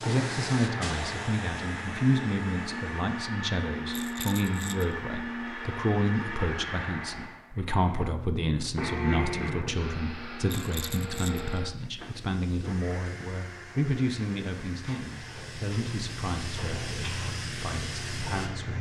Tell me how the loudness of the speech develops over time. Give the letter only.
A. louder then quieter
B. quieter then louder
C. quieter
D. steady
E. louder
C.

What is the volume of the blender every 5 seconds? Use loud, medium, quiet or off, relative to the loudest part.
loud, loud, medium, medium.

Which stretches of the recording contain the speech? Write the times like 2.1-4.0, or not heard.
0.1-18.7.